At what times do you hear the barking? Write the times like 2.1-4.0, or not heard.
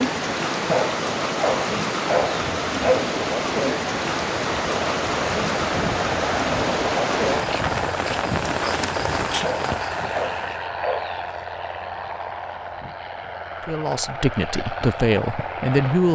0.7-3.1, 9.4-11.2.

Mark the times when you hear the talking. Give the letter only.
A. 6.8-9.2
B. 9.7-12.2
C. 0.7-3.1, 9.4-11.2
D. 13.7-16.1
D.